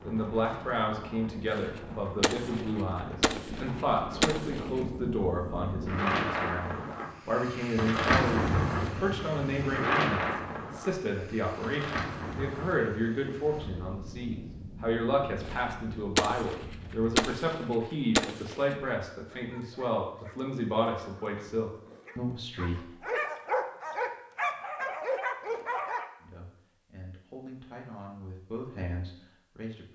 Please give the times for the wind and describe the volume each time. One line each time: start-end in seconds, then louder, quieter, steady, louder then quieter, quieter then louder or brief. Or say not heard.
0.0-17.1 louder then quieter.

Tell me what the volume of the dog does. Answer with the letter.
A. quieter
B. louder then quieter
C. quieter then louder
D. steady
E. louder
E.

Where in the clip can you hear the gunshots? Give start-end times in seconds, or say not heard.
1.5-4.7, 15.4-18.6.